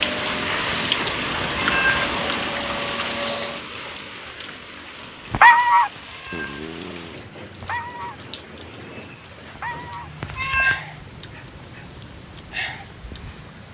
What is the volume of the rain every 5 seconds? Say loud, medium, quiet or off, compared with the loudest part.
loud, quiet, quiet.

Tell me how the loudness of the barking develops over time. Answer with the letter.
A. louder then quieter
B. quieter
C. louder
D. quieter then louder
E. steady
B.